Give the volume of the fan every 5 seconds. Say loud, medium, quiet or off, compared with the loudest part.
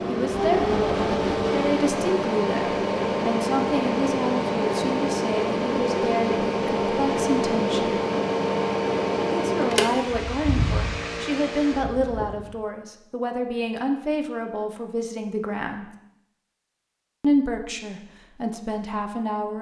loud, loud, medium, off.